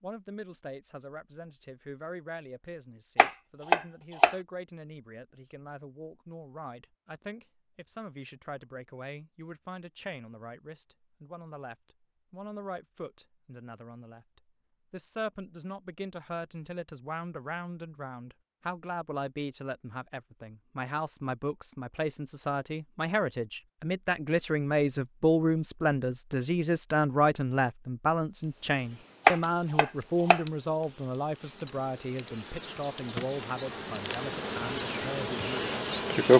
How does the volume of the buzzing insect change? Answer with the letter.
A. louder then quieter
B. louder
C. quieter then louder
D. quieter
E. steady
B.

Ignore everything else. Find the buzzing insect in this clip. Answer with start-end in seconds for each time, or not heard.
28.4-36.3.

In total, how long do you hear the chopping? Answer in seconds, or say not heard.
2 s.